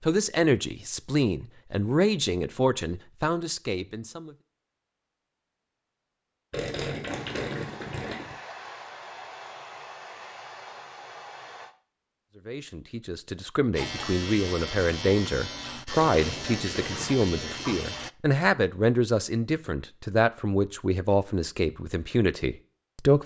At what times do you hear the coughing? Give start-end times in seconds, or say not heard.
not heard.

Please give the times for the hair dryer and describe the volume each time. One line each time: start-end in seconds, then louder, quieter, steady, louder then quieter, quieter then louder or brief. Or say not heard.
7.0-11.8 steady.